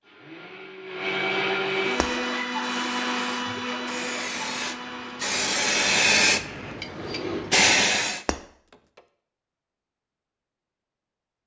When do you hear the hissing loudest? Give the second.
6 s.